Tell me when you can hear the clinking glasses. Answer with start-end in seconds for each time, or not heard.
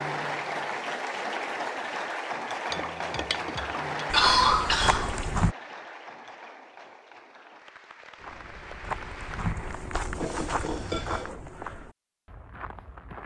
2.7-4.0, 10.2-11.3.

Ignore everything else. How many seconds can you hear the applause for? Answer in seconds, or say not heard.
10 s.